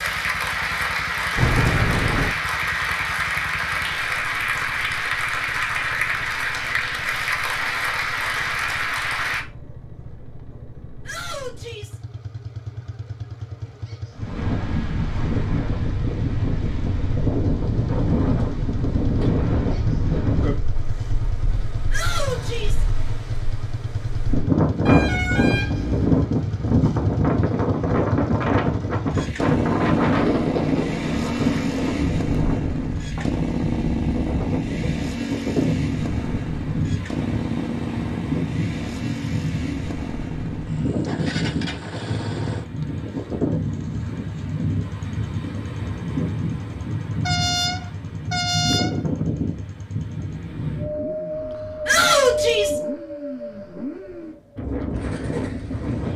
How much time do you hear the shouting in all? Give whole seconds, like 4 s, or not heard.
3 s.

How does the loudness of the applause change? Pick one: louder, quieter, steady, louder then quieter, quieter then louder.
steady.